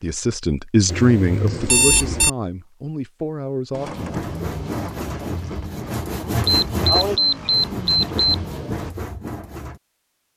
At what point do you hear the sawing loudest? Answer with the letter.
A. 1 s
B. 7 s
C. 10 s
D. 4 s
B.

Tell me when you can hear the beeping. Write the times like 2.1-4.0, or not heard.
0.8-2.3, 6.5-8.2.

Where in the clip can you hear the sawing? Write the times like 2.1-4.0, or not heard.
4.0-9.8.